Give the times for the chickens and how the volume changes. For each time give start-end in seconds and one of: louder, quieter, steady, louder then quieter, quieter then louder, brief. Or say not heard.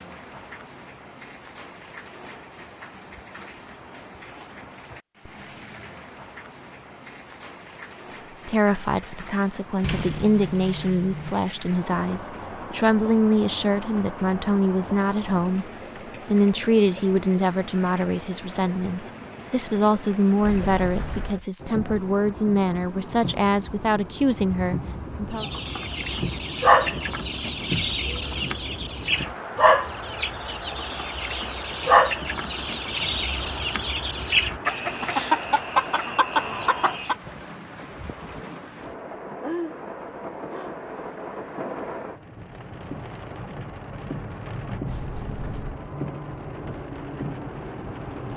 25.4-37.1 steady.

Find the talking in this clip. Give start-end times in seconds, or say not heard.
8.4-15.7, 16.2-25.4.